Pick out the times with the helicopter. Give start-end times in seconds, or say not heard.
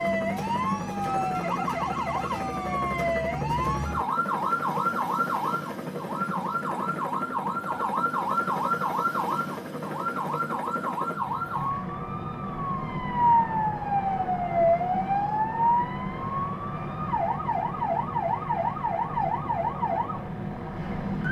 0.0-21.2.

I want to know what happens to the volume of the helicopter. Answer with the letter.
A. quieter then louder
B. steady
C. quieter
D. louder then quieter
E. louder
B.